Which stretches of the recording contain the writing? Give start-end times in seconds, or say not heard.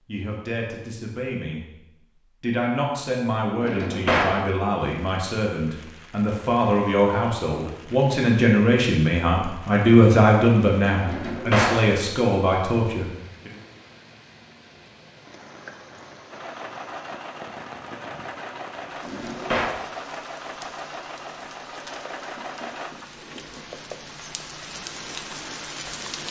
22.4-23.7.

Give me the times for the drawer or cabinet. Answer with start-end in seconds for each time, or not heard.
3.6-4.4, 11.1-11.8, 19.0-19.8.